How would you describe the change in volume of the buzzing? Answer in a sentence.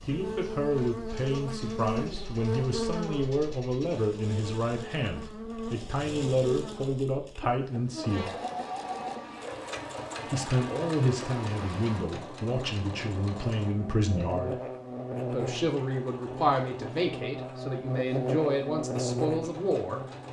The volume of the buzzing goes down, then up.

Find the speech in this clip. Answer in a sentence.
You can hear the speech from 0.1 to 8.3 s, from 10.2 to 14.6 s and from 15.2 to 20.0 s.